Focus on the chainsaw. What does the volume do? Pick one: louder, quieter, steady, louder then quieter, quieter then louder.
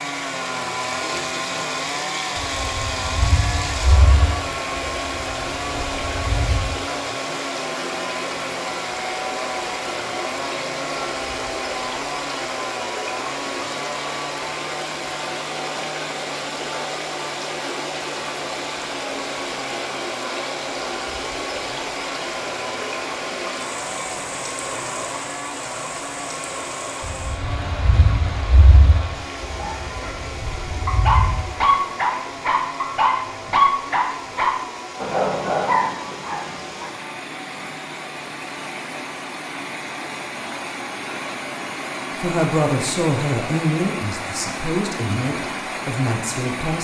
quieter.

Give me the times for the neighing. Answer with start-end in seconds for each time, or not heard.
not heard.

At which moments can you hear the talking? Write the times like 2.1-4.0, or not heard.
42.1-46.8.